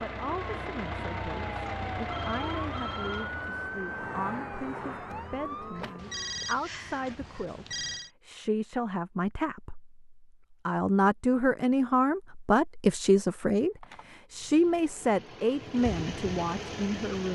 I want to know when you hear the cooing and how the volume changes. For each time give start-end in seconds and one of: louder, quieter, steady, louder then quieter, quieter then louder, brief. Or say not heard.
not heard.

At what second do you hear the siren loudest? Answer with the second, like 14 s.
4 s.